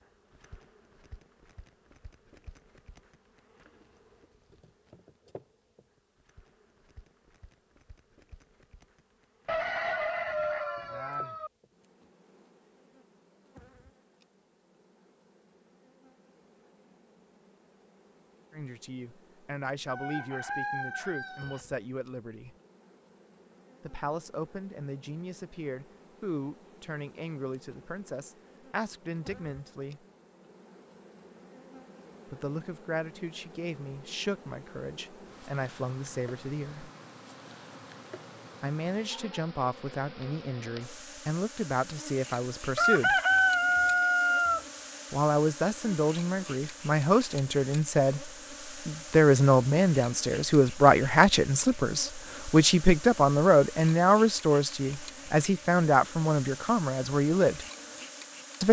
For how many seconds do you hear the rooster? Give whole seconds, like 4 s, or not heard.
6 s.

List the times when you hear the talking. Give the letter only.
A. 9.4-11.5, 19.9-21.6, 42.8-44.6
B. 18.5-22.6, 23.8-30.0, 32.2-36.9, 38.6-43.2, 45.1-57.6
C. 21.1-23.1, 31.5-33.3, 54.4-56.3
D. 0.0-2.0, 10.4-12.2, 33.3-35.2
B.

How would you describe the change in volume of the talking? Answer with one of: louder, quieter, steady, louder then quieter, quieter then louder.
louder.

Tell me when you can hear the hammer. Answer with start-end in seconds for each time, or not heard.
not heard.